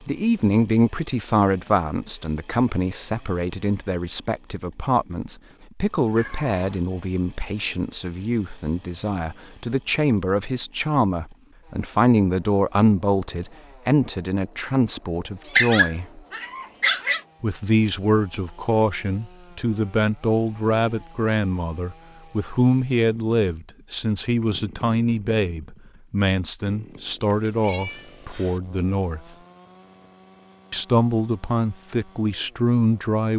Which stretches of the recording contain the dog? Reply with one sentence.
The dog can be heard from 15.6 to 17.2 s.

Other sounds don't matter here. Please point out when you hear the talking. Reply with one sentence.
You can hear the talking from 0.1 to 16.2 s, from 17.4 to 29.2 s and from 30.7 to 33.3 s.